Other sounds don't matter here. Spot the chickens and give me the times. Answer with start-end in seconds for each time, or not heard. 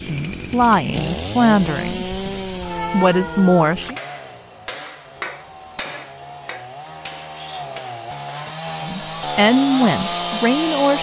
not heard.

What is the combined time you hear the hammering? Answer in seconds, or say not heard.
5 s.